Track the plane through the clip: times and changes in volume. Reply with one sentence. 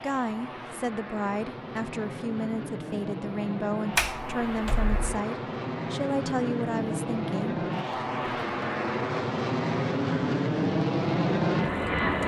You can hear the plane from 0.0 to 12.2 s, getting louder.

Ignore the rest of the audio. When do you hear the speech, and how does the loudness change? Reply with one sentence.
You can hear the speech from 0.0 to 7.6 s, at a steady volume.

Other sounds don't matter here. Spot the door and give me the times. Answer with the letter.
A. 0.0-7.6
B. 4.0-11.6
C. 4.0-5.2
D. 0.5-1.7
C.